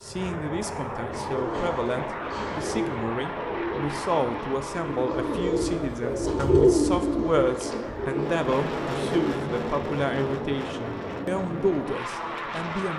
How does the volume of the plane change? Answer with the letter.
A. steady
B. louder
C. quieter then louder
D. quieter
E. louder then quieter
C.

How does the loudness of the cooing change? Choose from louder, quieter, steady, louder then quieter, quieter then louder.
louder then quieter.